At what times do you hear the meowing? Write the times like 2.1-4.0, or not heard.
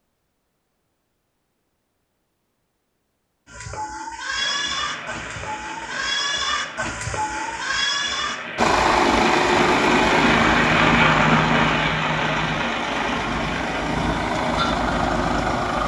not heard.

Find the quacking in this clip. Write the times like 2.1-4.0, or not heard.
not heard.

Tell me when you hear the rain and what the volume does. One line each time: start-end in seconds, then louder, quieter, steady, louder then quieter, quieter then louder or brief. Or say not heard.
4.3-15.8 louder then quieter.